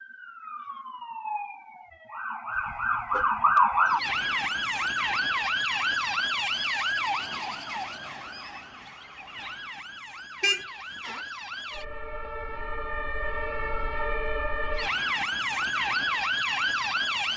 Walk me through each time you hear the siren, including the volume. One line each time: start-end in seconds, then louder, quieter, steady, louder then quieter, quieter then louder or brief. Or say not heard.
0.0-17.3 quieter then louder.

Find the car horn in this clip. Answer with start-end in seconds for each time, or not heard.
2.5-3.9, 10.4-11.2.